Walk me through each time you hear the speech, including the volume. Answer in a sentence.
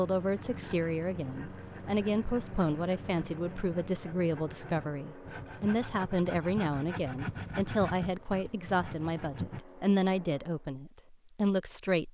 The speech can be heard from 0.0 to 12.1 s, at a steady volume.